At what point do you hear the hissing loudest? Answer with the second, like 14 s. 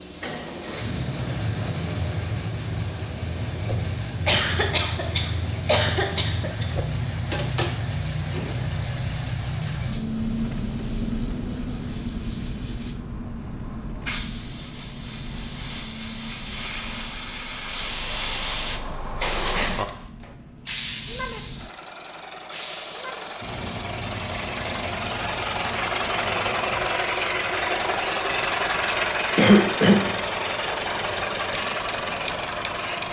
18 s.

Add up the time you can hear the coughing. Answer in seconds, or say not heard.
3 s.